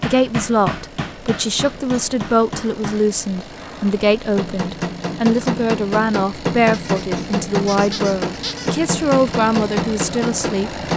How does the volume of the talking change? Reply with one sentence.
The volume of the talking stays about the same.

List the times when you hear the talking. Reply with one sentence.
The talking can be heard from 0.0 to 10.8 s.